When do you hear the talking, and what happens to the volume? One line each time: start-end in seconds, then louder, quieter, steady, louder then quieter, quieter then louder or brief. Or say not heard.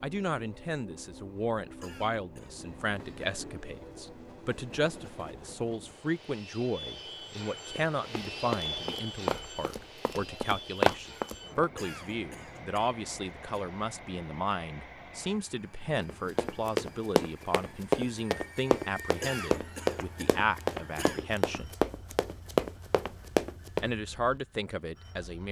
0.0-21.8 steady
23.8-25.4 brief.